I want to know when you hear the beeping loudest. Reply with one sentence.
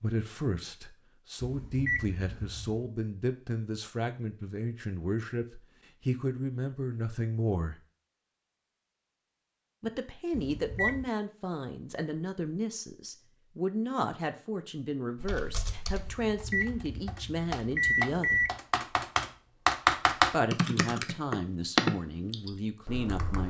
The volume of the beeping peaks at 18 seconds.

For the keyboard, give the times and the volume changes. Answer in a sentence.
You can hear the keyboard briefly from 15.2 to 16.1 s; and from 17.1 to 23.4 s, getting louder then quieter.